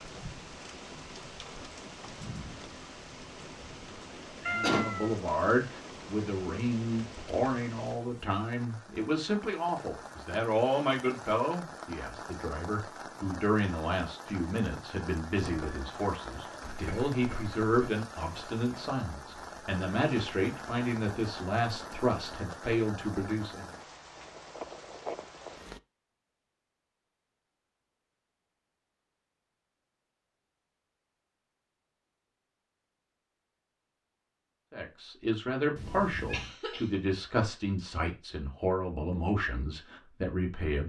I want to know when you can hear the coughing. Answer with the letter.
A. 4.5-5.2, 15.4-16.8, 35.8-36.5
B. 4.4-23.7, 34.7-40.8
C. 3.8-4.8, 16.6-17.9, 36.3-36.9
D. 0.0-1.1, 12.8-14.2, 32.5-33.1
C.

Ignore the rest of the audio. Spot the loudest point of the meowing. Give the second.
5 s.